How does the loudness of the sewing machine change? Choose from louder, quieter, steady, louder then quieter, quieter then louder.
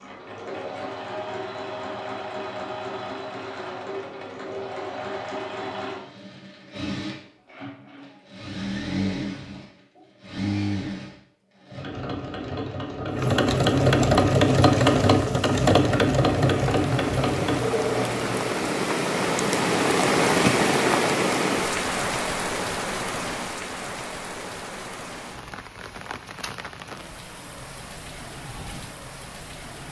louder.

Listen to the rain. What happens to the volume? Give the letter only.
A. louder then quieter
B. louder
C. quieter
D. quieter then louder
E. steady
A.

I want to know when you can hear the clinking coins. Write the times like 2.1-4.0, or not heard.
not heard.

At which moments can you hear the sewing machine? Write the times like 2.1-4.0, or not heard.
0.0-18.6.